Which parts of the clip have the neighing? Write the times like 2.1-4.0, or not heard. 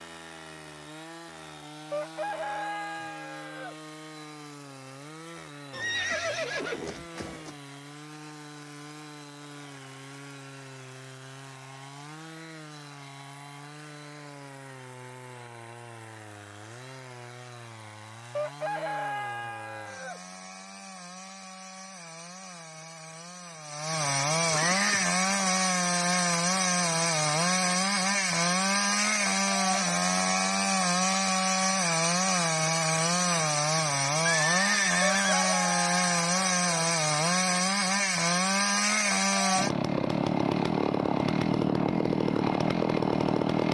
5.7-7.5, 24.5-25.1, 34.2-35.5.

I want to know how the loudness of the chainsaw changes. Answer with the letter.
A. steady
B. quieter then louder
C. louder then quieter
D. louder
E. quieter
D.